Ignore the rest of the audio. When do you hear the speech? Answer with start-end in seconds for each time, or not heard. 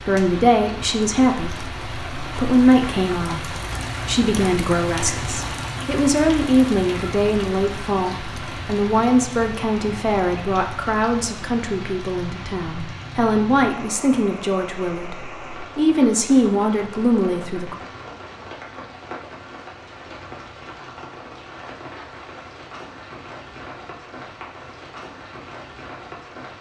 0.1-17.8.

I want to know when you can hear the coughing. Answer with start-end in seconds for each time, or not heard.
not heard.